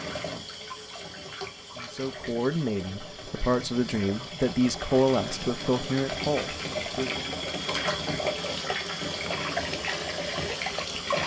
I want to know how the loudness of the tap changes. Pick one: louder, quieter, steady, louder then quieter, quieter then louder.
louder.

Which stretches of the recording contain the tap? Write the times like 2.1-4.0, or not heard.
0.0-11.2.